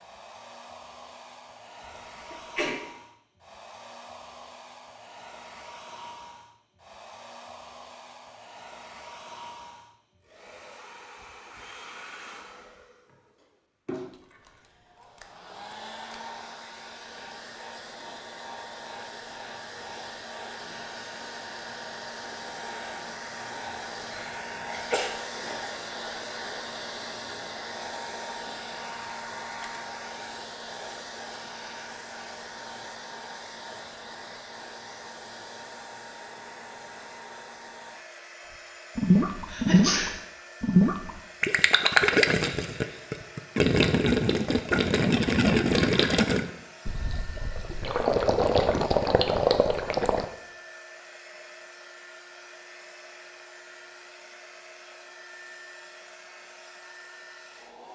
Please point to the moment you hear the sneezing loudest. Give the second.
40 s.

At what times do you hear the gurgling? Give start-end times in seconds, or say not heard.
39.0-50.2.